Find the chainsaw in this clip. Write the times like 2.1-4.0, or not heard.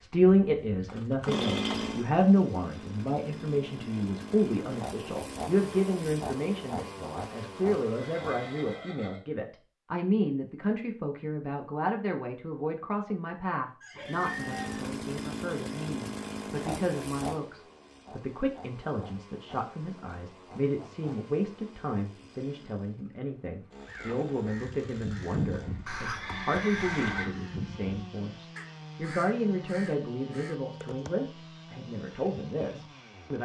0.0-9.0, 14.1-33.4.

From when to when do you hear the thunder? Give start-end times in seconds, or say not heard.
not heard.